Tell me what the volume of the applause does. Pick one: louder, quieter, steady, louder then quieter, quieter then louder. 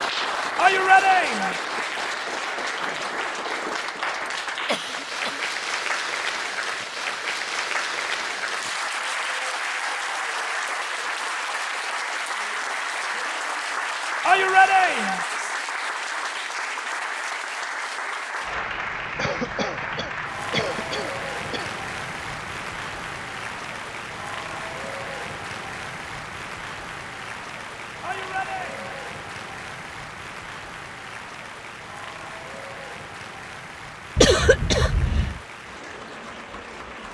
quieter.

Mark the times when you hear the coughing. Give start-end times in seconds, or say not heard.
4.2-5.4, 19.1-21.8, 34.1-35.4.